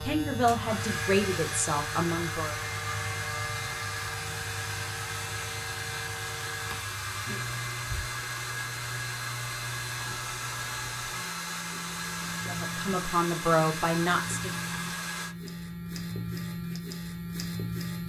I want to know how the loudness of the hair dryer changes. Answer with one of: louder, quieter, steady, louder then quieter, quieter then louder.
steady.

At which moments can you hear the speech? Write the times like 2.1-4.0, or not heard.
0.0-2.5, 12.4-14.5.